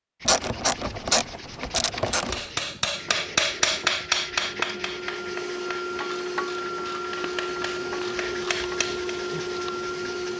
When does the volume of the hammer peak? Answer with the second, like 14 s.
4 s.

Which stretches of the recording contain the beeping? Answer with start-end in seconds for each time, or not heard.
not heard.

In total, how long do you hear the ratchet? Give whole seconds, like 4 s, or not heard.
5 s.